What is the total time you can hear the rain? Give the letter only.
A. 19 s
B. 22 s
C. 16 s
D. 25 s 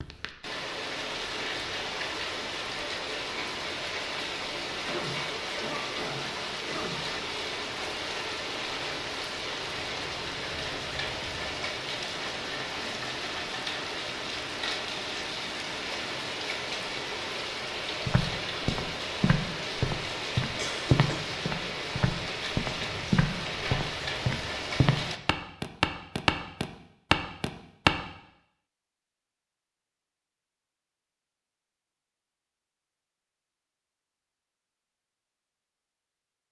D.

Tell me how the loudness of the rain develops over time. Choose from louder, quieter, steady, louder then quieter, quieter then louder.
steady.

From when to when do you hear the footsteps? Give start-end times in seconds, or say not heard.
18.1-27.9.